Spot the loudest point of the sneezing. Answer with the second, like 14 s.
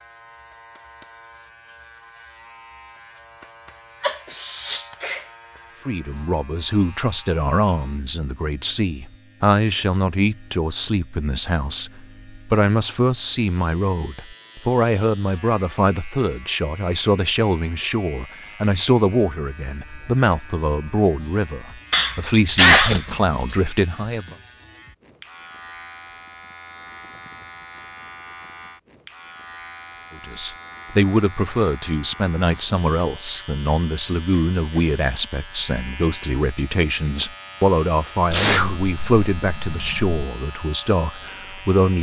23 s.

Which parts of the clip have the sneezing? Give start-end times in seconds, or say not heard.
4.0-5.2, 21.9-23.6, 38.3-40.1.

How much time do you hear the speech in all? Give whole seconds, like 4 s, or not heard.
30 s.